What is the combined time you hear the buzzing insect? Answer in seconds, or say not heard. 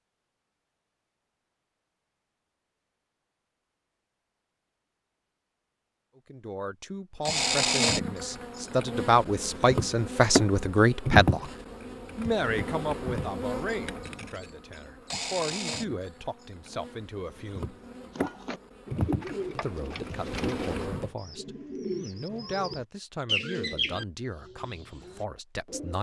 14 s.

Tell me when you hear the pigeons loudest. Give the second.
23 s.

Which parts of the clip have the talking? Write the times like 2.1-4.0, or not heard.
6.2-11.5, 12.2-17.8, 19.6-25.9.